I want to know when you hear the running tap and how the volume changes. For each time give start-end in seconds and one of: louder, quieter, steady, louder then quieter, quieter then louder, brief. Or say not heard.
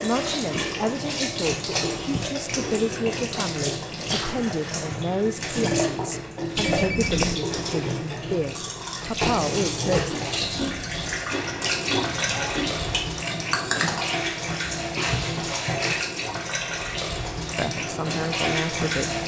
0.0-19.2 steady.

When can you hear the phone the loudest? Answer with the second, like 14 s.
7 s.